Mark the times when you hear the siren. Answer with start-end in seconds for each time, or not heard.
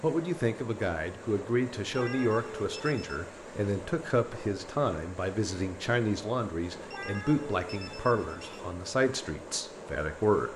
not heard.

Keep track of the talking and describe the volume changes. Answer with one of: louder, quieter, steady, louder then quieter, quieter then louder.
steady.